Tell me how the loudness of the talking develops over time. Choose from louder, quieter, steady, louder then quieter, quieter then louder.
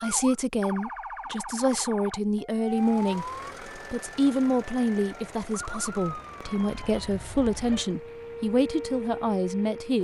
steady.